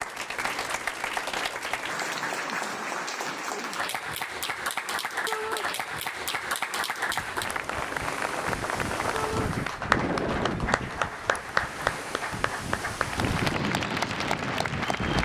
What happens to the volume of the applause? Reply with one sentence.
The volume of the applause stays about the same.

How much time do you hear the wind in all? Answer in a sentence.
The wind can be heard for 8 seconds in total.